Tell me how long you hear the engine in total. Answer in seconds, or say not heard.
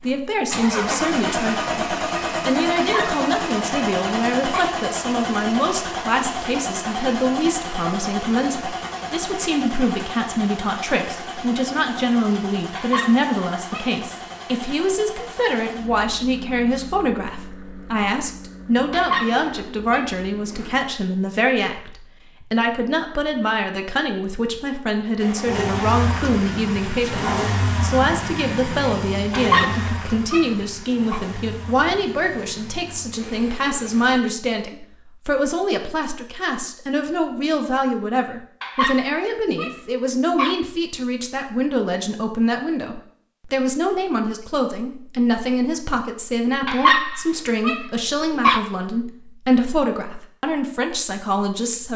30 s.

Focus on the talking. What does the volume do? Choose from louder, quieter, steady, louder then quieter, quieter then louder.
steady.